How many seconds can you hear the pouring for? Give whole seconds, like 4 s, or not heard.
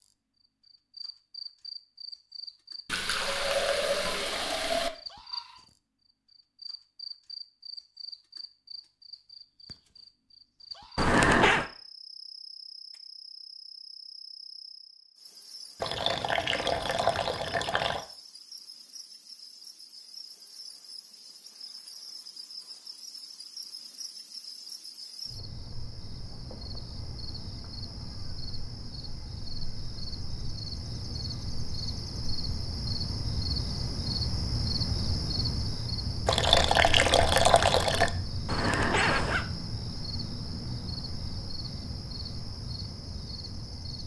6 s.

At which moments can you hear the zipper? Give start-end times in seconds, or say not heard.
10.9-11.7, 38.5-39.5.